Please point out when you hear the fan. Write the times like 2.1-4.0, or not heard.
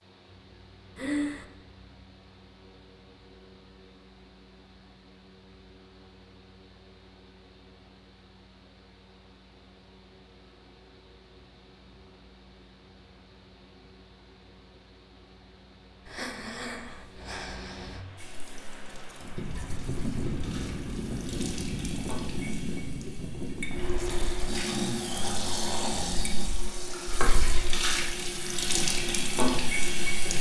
0.0-30.3.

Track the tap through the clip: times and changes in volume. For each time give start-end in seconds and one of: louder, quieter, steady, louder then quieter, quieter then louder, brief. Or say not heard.
18.1-30.3 louder.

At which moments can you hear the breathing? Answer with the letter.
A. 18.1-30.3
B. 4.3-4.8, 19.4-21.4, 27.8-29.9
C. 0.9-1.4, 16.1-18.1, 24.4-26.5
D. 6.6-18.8
C.